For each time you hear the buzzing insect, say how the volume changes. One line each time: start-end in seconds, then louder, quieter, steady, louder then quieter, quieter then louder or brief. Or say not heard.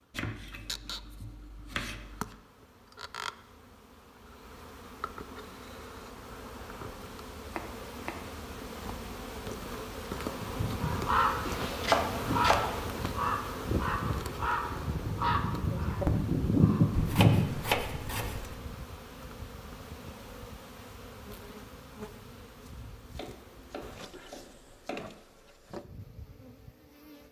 0.0-27.2 louder then quieter.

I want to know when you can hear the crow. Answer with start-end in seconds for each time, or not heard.
10.3-17.6.